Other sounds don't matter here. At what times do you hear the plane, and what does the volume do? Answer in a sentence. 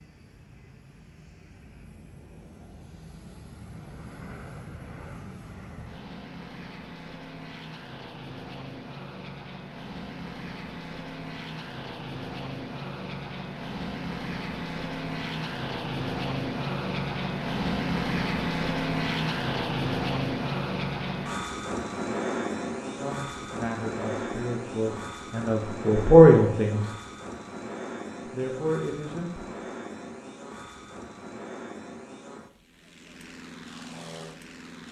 You can hear the plane from 0.0 to 34.8 s, getting louder then quieter.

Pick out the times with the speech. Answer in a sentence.
The speech can be heard from 22.9 to 26.9 s and from 28.3 to 29.6 s.